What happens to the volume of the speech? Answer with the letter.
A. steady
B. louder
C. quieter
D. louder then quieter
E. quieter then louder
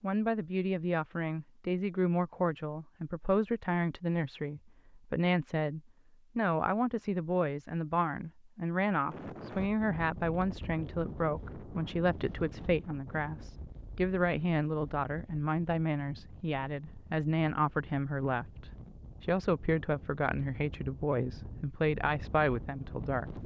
A.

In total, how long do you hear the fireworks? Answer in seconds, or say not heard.
not heard.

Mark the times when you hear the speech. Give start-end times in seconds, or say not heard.
0.0-23.3.